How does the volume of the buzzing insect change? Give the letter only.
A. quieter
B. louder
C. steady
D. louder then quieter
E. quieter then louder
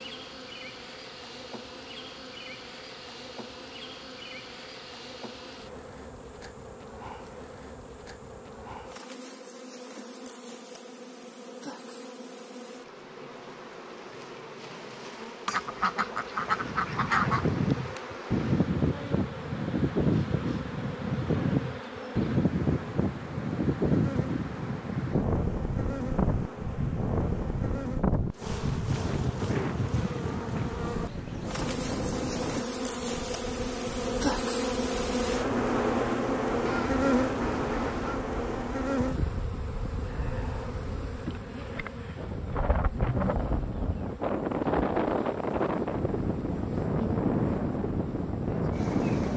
D.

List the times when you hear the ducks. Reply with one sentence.
You can hear the ducks from 15.4 to 17.5 s and from 36.6 to 38.2 s.